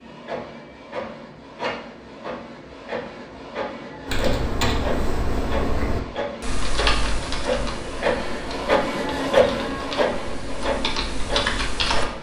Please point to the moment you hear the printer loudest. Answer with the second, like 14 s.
9 s.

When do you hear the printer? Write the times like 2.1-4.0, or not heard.
0.0-12.1.